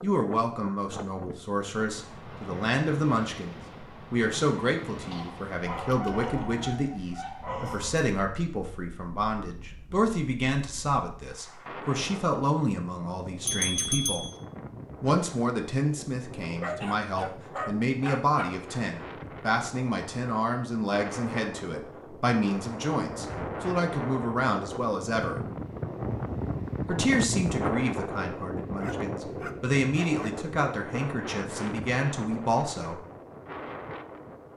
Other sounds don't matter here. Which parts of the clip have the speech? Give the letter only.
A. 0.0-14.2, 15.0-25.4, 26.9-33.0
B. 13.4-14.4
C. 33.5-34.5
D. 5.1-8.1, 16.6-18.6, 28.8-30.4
A.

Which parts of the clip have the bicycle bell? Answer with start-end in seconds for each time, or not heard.
13.4-14.4.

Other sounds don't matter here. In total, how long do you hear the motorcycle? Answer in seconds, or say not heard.
not heard.